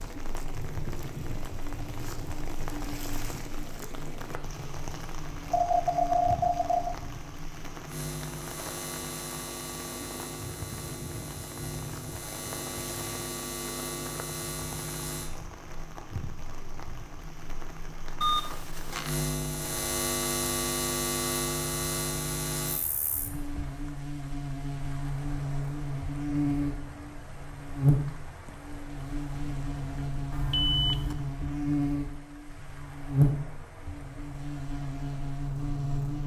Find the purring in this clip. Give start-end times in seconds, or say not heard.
not heard.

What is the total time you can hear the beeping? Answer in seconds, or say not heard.
4 s.